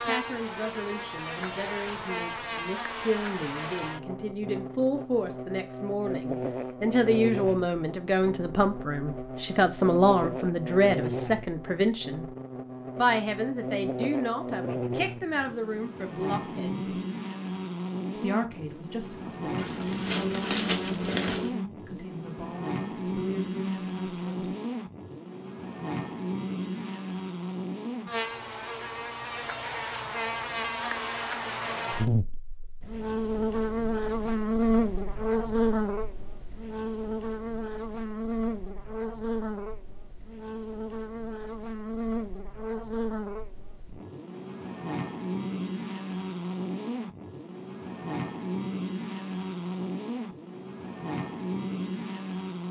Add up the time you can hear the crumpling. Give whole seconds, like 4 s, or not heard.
2 s.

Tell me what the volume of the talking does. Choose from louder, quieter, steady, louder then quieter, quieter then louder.
louder then quieter.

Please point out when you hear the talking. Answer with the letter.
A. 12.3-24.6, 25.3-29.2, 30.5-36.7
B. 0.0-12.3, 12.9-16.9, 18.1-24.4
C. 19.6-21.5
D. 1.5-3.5
B.